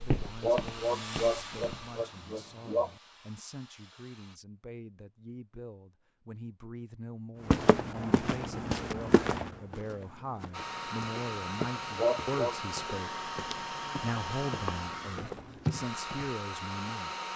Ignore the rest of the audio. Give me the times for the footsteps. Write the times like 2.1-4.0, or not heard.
0.0-1.9, 7.5-16.4.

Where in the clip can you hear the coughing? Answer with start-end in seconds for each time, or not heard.
0.4-2.9, 11.9-12.6.